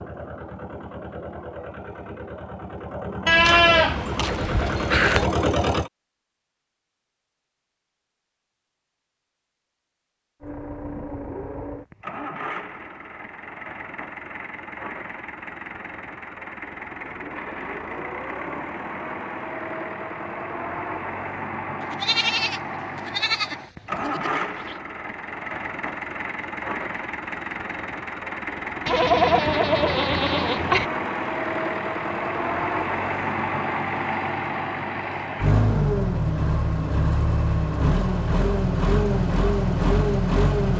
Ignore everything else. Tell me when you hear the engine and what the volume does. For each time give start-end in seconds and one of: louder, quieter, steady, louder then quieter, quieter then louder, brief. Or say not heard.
0.0-5.9 louder
10.4-40.7 louder.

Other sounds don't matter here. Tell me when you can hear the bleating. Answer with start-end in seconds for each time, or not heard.
3.2-5.2, 21.8-24.8, 28.9-30.9.